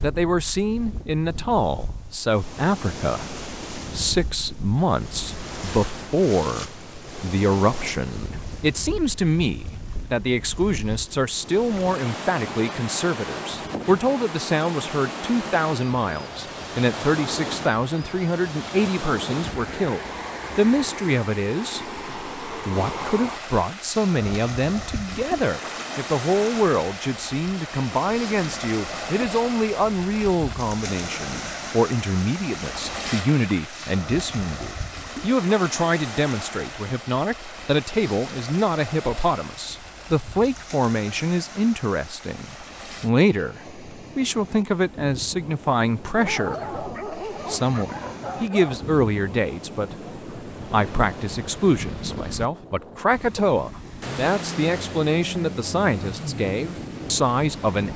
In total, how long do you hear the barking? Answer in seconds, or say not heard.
3 s.